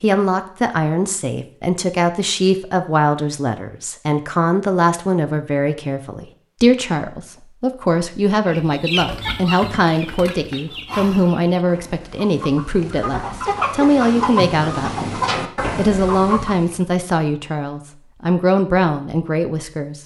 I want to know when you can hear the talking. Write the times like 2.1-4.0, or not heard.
0.0-20.0.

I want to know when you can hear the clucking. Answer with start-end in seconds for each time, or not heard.
8.4-16.8.